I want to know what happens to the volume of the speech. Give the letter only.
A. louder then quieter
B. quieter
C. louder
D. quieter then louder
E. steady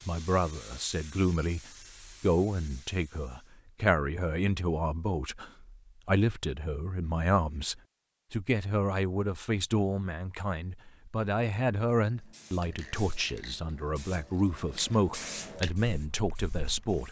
E.